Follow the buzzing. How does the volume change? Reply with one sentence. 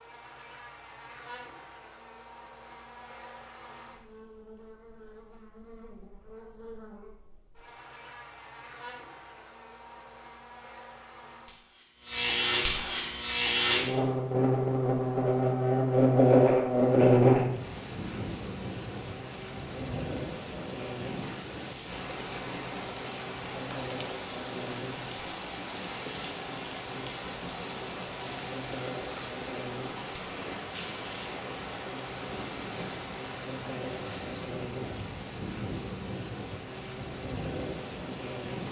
The loudness of the buzzing goes up, then down.